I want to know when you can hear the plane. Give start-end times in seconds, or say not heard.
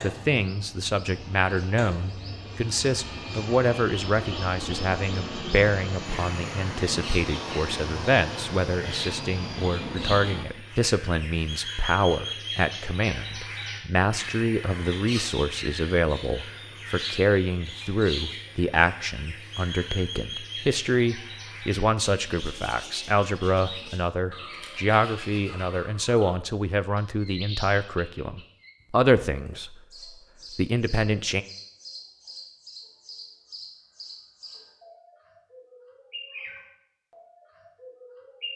0.0-10.4.